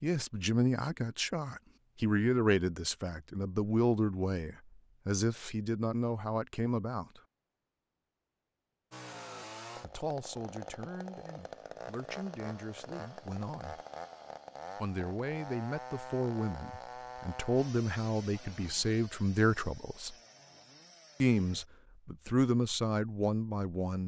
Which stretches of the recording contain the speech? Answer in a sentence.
You can hear the speech from 0.0 to 7.2 s, from 9.8 to 13.8 s, from 14.8 to 20.1 s and from 21.2 to 24.0 s.